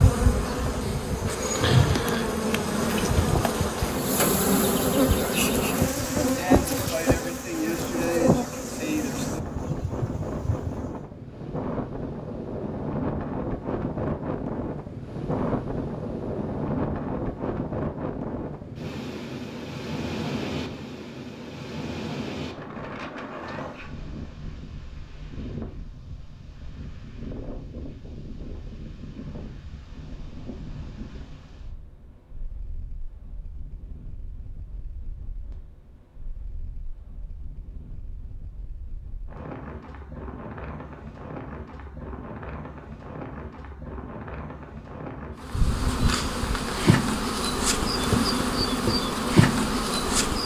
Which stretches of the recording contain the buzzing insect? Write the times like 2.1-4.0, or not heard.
0.0-11.1, 45.5-50.4.